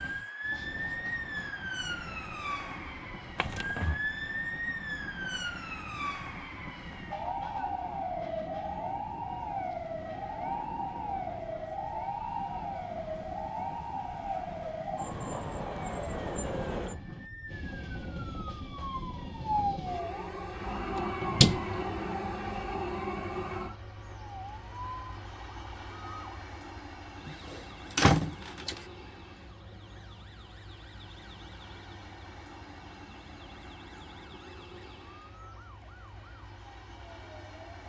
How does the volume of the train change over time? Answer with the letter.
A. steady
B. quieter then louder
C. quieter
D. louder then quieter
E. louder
D.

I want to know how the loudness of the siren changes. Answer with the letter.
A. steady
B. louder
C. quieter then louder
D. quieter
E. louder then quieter
D.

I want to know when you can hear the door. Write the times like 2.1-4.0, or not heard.
3.4-4.0, 20.9-21.6, 27.2-28.8.